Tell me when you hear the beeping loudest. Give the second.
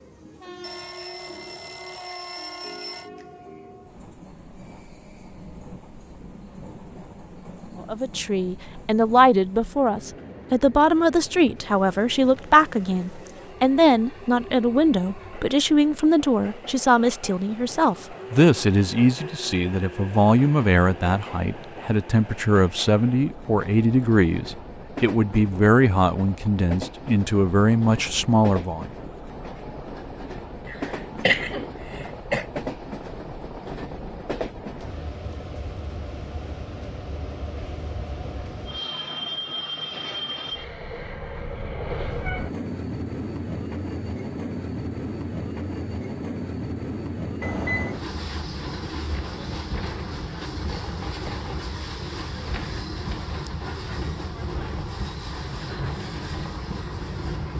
48 s.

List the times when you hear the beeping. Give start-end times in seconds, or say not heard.
0.6-3.1, 47.4-48.0.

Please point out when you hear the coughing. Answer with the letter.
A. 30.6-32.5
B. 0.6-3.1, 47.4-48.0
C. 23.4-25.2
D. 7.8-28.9
A.